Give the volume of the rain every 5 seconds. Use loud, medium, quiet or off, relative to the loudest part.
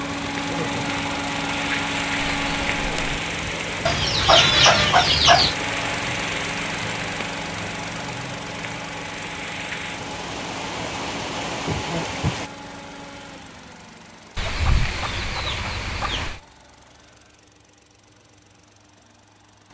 loud, loud, loud, off.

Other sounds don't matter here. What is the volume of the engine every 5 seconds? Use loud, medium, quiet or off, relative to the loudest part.
loud, loud, medium, quiet.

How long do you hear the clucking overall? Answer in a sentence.
You can hear the clucking for 4 seconds altogether.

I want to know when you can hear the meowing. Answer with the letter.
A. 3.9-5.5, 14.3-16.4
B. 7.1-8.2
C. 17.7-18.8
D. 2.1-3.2
D.